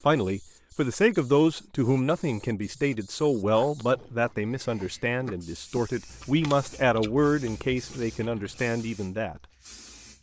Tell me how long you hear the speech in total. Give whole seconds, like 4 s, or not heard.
9 s.